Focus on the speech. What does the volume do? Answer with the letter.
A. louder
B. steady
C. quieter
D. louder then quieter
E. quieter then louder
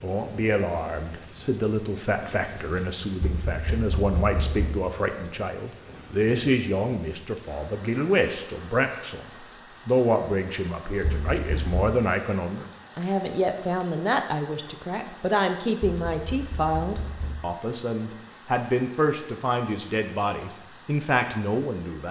B.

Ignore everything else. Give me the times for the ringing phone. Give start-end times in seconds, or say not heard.
not heard.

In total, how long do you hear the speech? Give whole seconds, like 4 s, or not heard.
22 s.